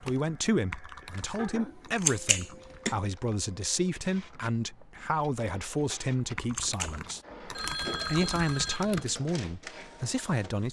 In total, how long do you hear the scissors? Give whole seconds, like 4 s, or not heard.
3 s.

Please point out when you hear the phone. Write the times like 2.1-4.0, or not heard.
7.5-8.9.